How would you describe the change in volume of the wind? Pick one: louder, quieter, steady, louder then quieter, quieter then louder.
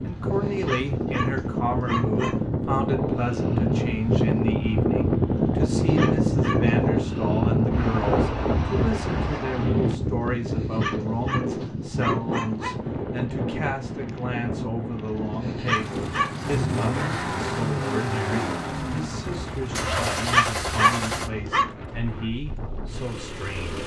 quieter.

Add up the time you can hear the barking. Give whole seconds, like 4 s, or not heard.
9 s.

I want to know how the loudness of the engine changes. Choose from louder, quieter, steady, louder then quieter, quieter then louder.
quieter.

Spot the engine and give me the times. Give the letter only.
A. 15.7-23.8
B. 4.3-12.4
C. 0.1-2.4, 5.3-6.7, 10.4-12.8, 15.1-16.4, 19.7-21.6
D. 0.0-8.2
A.